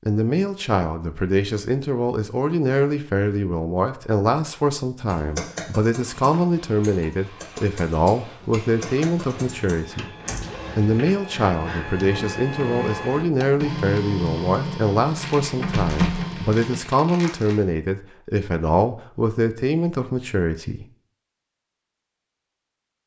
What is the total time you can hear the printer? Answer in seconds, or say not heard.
11 s.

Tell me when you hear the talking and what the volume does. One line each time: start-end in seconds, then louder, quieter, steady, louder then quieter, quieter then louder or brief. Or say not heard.
0.1-20.9 steady.